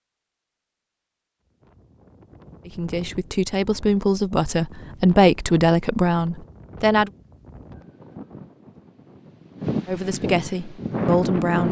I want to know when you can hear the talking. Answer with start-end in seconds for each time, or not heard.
2.6-7.1, 9.8-11.6.